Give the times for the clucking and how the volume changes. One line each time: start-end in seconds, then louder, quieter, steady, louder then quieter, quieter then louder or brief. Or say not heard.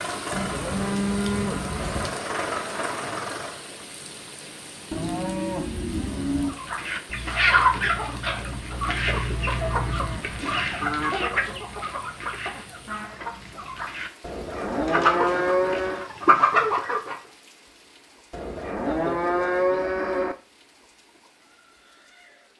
6.5-17.1 quieter then louder.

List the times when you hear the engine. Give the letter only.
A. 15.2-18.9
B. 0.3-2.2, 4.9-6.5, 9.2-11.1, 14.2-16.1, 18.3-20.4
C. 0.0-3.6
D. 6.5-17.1
C.